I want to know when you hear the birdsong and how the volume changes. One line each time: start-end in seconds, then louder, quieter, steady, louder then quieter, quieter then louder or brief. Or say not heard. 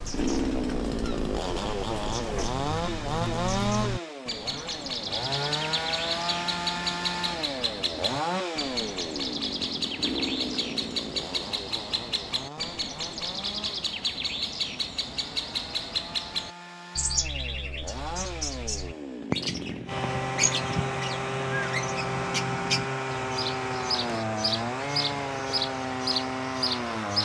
0.0-27.1 steady.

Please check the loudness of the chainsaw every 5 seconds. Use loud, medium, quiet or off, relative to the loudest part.
loud, loud, medium, medium, loud, loud.